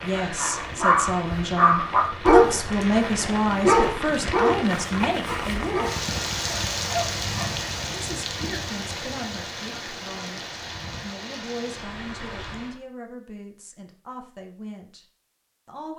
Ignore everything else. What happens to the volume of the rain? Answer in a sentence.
The volume of the rain goes up, then down.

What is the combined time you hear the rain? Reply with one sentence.
You can hear the rain for 13 seconds altogether.